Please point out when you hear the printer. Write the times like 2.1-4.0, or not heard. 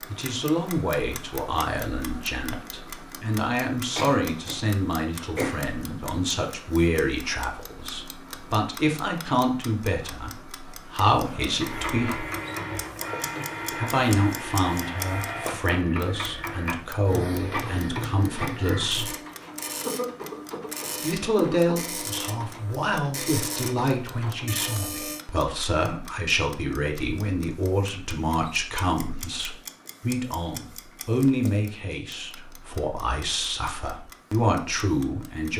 11.2-25.2.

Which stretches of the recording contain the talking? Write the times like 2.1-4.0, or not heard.
0.1-12.2, 13.8-19.1, 21.0-35.5.